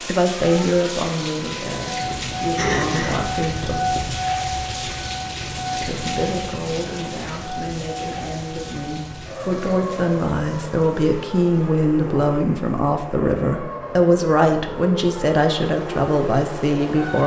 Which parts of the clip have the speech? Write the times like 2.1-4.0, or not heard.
0.0-3.8, 5.8-17.2.